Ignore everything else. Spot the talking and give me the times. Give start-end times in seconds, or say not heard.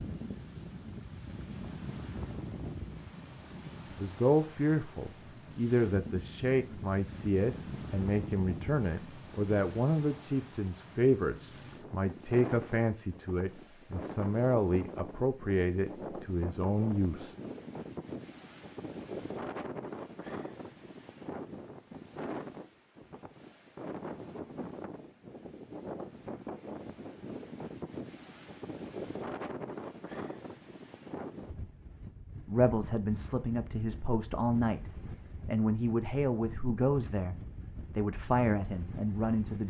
4.0-17.4, 32.5-39.6.